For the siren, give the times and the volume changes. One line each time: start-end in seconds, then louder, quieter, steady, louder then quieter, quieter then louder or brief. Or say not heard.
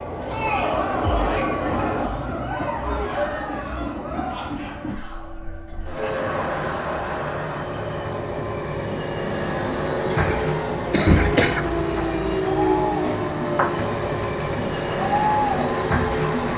not heard.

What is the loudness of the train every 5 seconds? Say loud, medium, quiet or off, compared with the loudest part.
medium, medium, loud, loud.